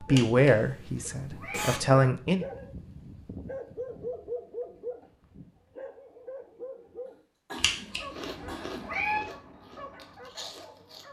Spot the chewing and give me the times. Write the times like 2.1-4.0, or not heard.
7.9-11.0.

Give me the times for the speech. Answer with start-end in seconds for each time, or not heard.
0.0-2.5.